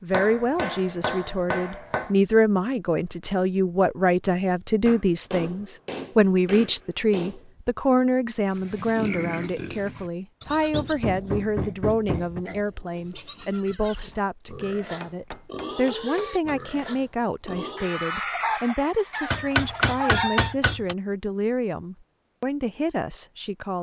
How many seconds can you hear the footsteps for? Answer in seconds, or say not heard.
not heard.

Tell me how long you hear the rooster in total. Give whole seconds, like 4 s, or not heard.
3 s.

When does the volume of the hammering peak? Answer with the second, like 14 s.
20 s.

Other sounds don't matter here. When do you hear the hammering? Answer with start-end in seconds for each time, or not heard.
0.1-2.1, 4.8-7.5, 10.7-12.4, 15.0-16.6, 19.3-20.9.